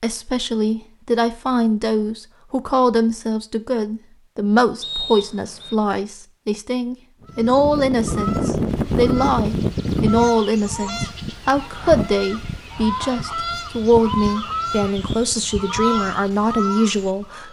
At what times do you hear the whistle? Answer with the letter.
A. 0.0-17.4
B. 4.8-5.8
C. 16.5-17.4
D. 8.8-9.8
B.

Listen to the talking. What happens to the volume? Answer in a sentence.
The loudness of the talking stays about the same.